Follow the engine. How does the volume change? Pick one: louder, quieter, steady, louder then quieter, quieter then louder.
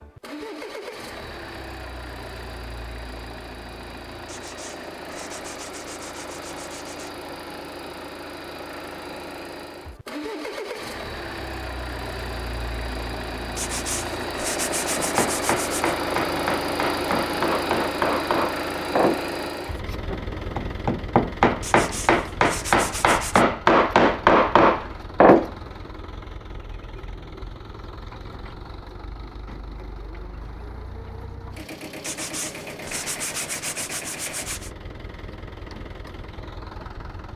louder then quieter.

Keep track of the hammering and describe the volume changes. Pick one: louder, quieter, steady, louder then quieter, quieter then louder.
louder.